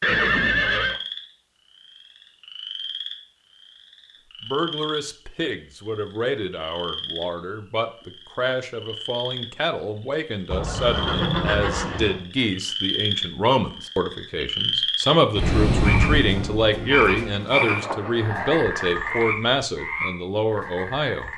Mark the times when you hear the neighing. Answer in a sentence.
The neighing can be heard from 0.0 to 1.0 s, from 10.5 to 12.2 s and from 17.6 to 19.4 s.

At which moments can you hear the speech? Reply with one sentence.
The speech can be heard from 4.4 to 21.3 s.